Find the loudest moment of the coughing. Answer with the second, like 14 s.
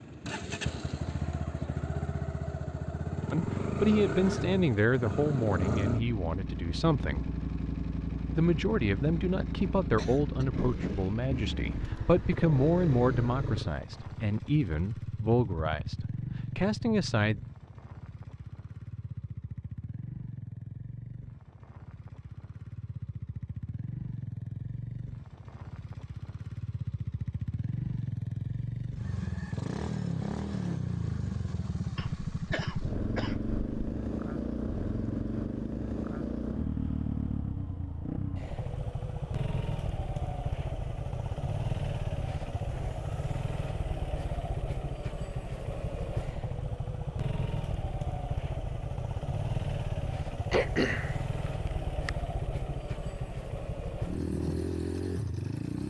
51 s.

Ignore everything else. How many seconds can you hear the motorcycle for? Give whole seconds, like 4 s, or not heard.
56 s.